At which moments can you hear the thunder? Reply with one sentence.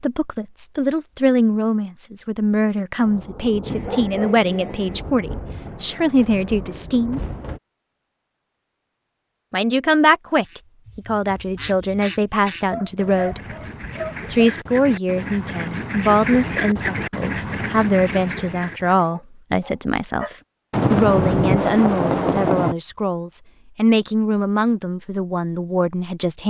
You can hear the thunder from 3.0 to 7.6 s and from 20.7 to 22.8 s.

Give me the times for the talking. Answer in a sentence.
The talking can be heard from 0.0 to 7.2 s, from 9.5 to 13.4 s and from 14.2 to 26.4 s.